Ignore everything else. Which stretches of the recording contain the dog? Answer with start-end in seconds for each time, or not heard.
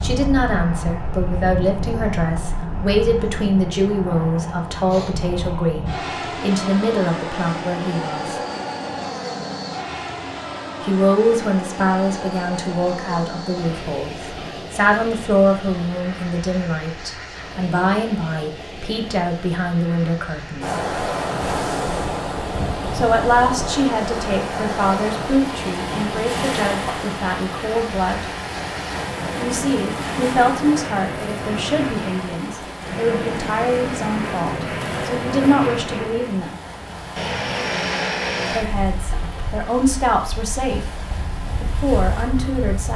not heard.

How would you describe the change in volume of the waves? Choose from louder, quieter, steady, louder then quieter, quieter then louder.
quieter.